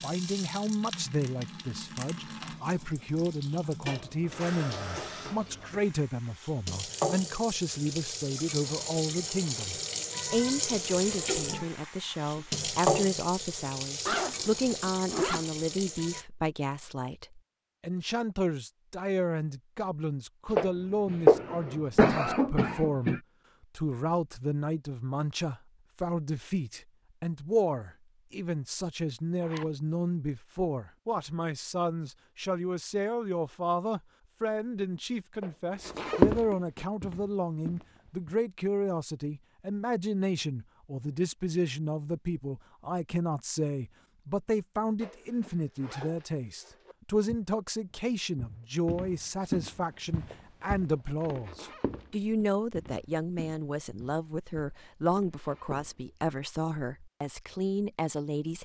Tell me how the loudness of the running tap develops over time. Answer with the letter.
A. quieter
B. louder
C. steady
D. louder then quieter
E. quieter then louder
B.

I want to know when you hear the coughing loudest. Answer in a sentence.
The volume of the coughing peaks at 21 seconds.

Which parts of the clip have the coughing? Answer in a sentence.
The coughing can be heard from 20.5 to 23.2 s and from 35.4 to 36.4 s.